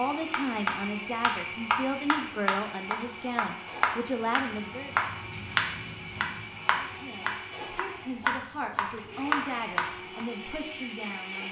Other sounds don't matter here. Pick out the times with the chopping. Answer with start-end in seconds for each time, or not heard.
0.3-10.2.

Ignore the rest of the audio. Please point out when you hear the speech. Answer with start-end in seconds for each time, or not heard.
0.0-5.0, 6.8-11.4.